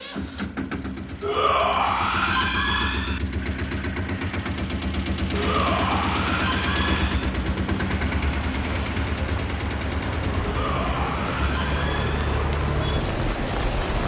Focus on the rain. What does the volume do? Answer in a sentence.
The volume of the rain goes up.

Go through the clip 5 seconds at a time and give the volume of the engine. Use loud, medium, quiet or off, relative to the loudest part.
loud, loud, medium.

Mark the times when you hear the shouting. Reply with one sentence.
You can hear the shouting from 1.2 to 3.2 s, from 5.3 to 7.3 s and from 10.4 to 12.4 s.